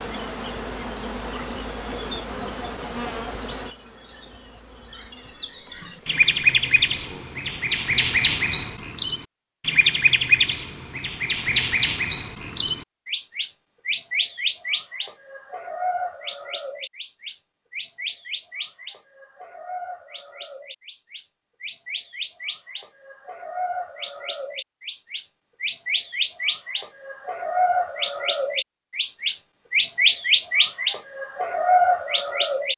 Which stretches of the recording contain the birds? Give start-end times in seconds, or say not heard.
0.0-32.7.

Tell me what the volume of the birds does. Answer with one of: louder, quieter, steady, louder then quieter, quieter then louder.
quieter then louder.